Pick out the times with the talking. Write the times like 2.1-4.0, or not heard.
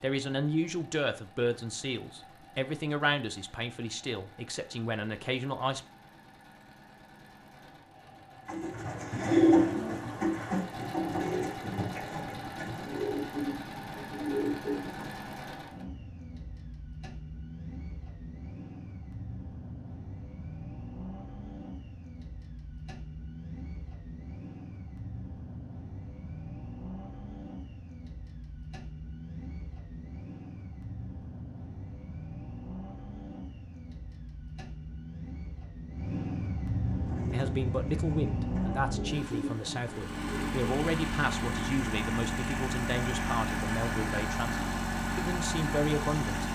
0.0-5.8, 37.3-46.4.